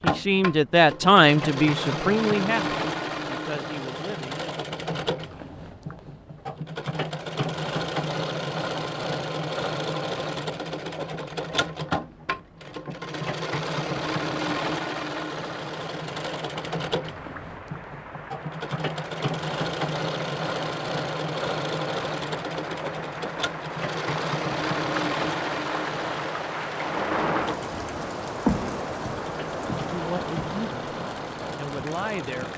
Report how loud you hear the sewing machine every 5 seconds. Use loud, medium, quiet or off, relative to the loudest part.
loud, loud, loud, loud, loud, loud, medium.